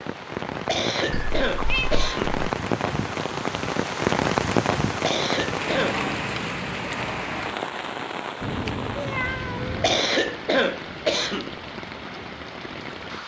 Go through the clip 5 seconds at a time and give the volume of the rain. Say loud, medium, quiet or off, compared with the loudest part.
loud, loud, medium.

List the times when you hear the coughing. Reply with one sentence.
The coughing can be heard from 0.7 to 2.4 s, from 5.0 to 6.0 s and from 9.8 to 11.6 s.